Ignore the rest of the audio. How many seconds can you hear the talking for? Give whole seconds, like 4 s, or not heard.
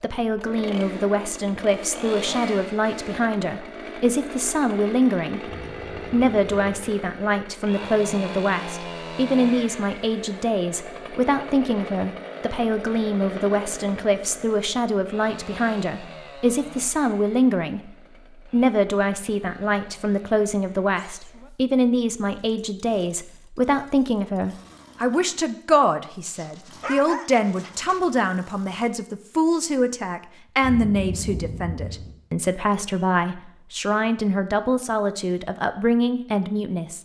37 s.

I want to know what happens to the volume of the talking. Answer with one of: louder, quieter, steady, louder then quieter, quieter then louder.
steady.